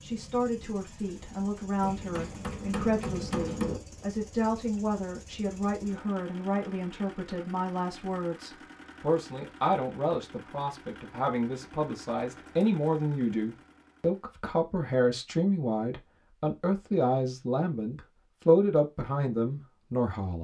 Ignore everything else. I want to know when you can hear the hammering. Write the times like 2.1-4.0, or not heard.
1.8-3.8.